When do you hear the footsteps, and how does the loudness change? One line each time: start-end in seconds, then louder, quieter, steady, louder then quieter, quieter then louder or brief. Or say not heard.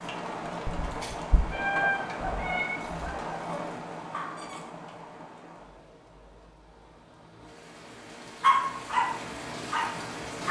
not heard.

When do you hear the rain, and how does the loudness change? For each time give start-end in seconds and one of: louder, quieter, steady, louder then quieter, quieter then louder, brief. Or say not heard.
0.0-10.4 quieter then louder.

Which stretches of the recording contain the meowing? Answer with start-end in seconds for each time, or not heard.
1.5-2.8.